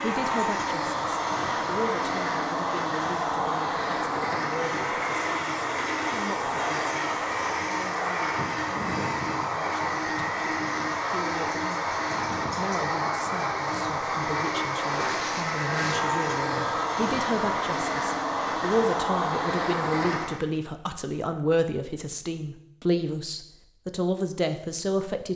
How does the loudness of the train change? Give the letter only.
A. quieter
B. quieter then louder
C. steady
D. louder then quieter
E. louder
C.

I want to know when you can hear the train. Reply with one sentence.
The train can be heard from 0.0 to 20.4 s.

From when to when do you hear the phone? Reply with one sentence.
The phone can be heard from 15.7 to 16.9 s.